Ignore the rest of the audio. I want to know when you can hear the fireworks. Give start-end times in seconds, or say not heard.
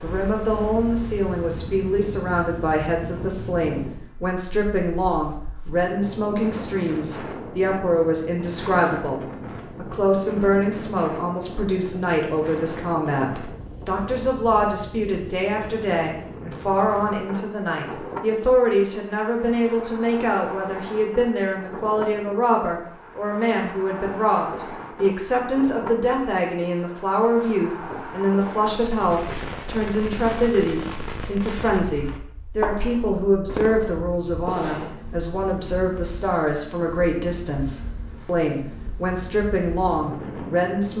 28.8-35.0.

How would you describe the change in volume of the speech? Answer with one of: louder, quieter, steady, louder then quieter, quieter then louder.
steady.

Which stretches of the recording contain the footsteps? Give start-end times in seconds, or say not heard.
not heard.